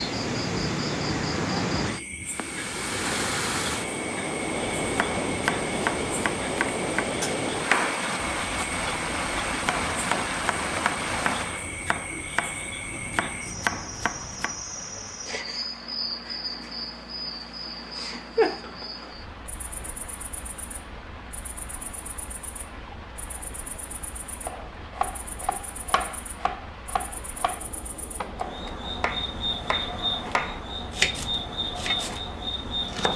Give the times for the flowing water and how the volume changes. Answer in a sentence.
You can hear the flowing water from 0.0 to 33.0 s, getting quieter.